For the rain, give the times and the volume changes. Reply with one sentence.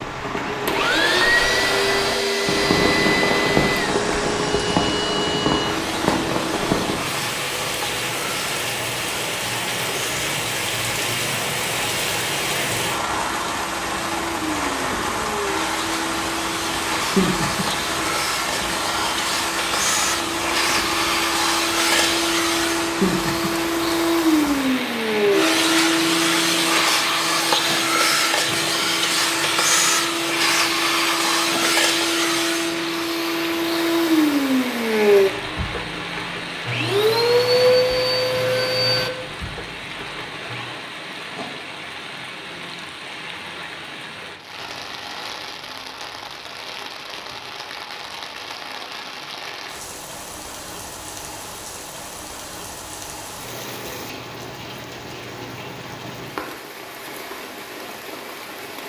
The rain can be heard from 0.0 to 58.8 s, getting quieter.